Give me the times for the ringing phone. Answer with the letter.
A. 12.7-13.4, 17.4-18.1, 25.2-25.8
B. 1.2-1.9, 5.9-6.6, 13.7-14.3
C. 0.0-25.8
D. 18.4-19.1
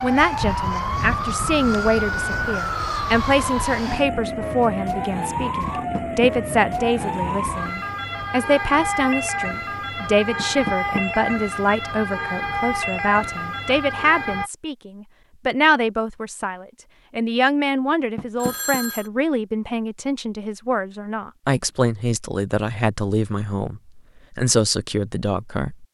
D.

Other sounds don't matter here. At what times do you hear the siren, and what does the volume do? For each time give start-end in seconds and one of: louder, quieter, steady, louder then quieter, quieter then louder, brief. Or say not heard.
0.0-14.5 steady.